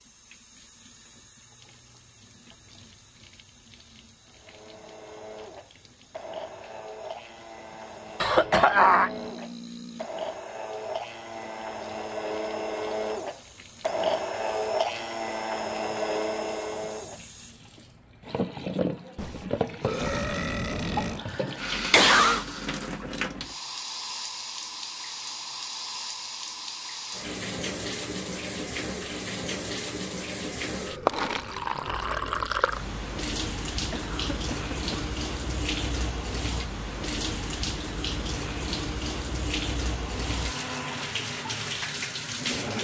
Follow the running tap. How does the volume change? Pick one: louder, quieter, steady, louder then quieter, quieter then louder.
louder.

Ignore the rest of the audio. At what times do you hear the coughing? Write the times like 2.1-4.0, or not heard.
8.2-9.1, 20.9-22.4, 33.8-35.1.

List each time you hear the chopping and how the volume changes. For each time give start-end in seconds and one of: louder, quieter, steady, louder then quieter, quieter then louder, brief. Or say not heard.
not heard.